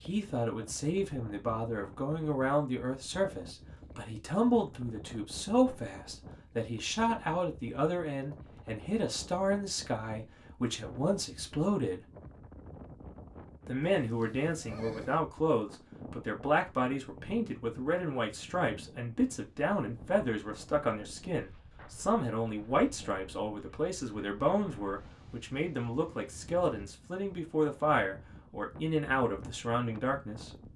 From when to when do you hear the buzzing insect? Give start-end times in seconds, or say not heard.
not heard.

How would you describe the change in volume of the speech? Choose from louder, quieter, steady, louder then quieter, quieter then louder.
steady.